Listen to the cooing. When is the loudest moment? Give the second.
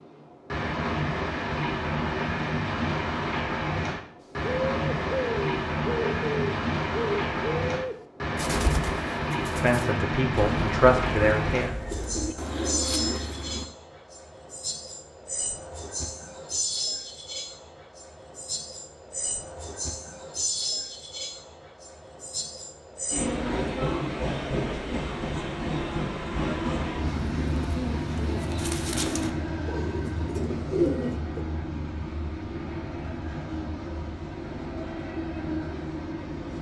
31 s.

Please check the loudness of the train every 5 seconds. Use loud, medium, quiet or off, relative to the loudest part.
loud, loud, loud, medium, loud, loud, medium, medium.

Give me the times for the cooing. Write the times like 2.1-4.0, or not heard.
4.4-13.7, 27.1-31.4.